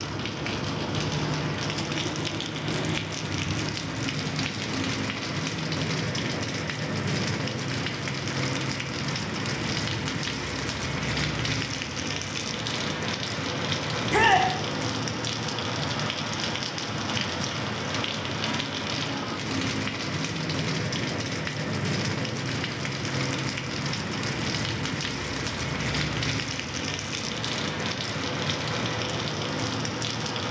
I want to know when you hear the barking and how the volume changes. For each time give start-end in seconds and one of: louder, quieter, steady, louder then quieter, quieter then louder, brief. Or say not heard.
not heard.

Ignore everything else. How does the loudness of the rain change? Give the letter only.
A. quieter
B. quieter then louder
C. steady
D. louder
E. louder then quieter
C.